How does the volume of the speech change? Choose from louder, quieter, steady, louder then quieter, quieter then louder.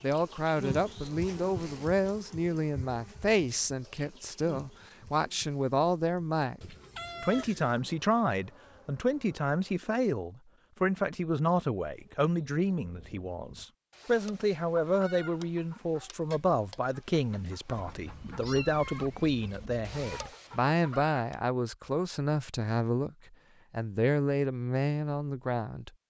steady.